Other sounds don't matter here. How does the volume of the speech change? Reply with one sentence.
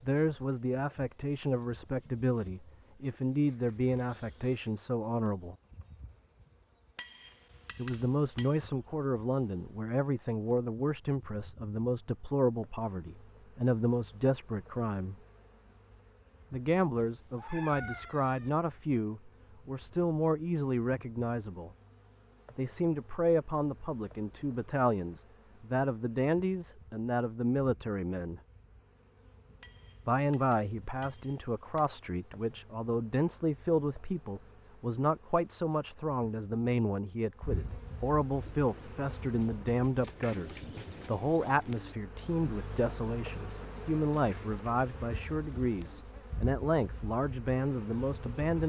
The volume of the speech stays about the same.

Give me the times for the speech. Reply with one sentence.
You can hear the speech from 0.0 to 5.5 s, from 7.8 to 15.2 s, from 16.5 to 21.7 s, from 22.6 to 28.4 s and from 30.1 to 48.6 s.